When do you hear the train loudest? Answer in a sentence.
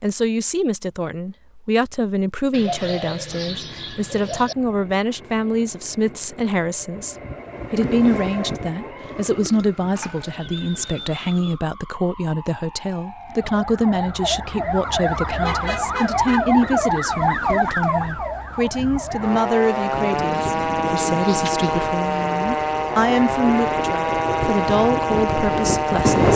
The loudest moment of the train is at 26 seconds.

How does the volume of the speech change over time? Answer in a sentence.
The loudness of the speech stays about the same.